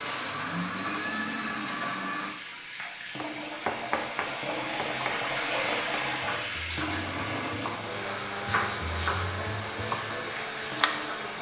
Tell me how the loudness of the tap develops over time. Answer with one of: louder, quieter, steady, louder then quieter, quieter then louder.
louder then quieter.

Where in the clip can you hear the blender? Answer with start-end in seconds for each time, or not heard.
0.0-2.3, 6.8-11.3.